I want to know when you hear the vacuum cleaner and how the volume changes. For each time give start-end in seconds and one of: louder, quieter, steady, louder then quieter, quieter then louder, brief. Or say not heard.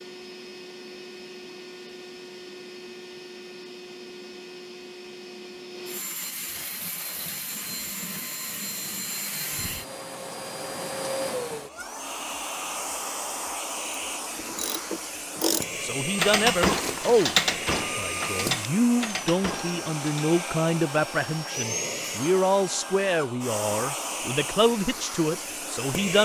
0.0-26.2 louder.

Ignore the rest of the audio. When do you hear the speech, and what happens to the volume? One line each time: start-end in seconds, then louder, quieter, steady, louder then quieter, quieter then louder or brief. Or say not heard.
15.8-26.2 steady.